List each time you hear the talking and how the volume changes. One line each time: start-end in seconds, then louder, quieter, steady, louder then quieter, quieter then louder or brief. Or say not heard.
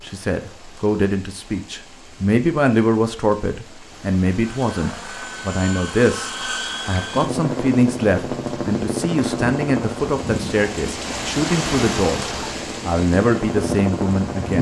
0.0-12.2 steady
12.8-14.5 brief.